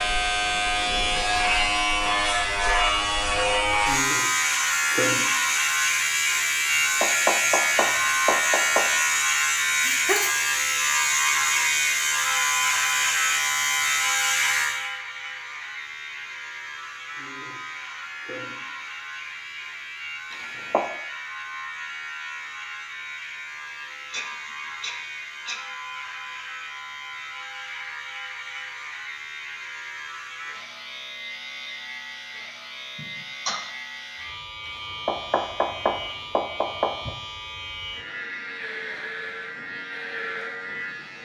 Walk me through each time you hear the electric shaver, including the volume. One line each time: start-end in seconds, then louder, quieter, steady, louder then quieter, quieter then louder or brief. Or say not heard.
0.0-41.2 quieter.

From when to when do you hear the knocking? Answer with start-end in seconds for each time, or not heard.
7.0-8.8, 20.3-20.9, 34.6-37.1.